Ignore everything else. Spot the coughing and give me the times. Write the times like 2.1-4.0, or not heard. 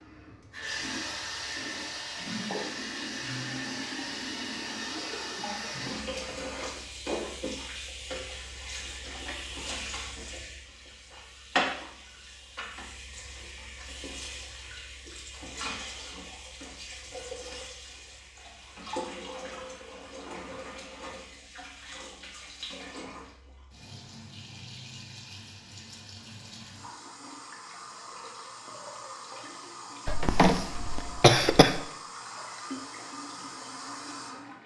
30.1-31.8.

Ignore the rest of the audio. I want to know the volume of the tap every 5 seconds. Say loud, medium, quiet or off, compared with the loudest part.
loud, loud, loud, medium, medium, medium, medium.